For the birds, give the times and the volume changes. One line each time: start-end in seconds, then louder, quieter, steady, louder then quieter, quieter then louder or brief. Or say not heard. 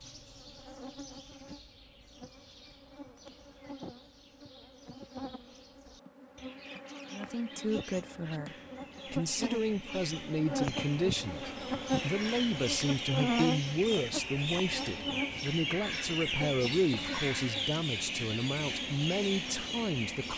0.0-20.3 louder.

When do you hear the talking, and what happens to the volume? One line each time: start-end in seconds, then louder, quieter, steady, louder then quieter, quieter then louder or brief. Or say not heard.
7.1-20.3 steady.